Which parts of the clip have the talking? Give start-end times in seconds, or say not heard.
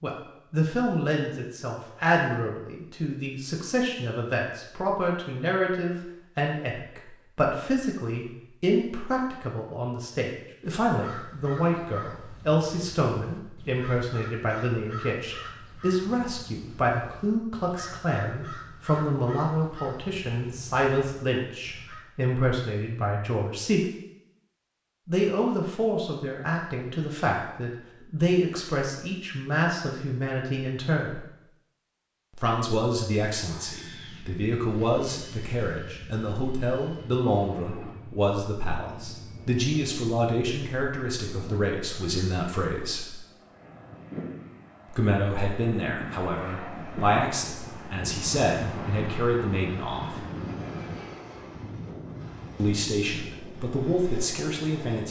0.0-23.9, 25.1-31.2, 32.4-43.1, 44.9-50.2, 52.5-55.0.